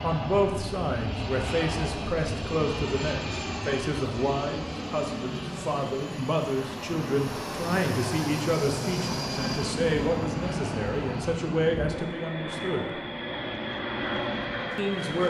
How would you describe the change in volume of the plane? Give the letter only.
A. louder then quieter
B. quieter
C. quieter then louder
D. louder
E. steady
E.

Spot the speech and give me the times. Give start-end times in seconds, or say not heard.
0.0-12.9, 14.8-15.2.